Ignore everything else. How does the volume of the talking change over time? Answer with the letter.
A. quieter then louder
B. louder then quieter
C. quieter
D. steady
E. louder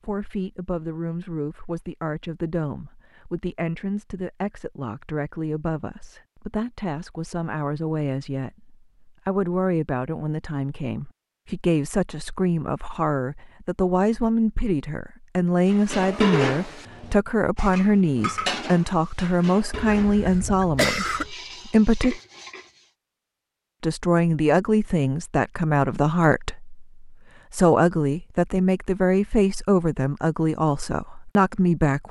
E.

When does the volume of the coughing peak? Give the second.
21 s.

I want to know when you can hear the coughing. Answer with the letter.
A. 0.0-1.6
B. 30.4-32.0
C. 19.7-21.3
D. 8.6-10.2
C.